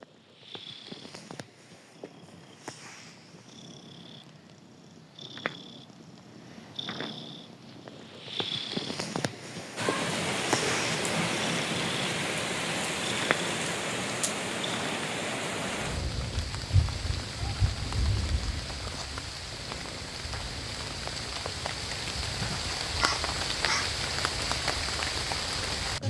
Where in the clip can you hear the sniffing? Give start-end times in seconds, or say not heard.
22.4-24.0.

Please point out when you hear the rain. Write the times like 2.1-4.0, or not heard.
9.8-26.0.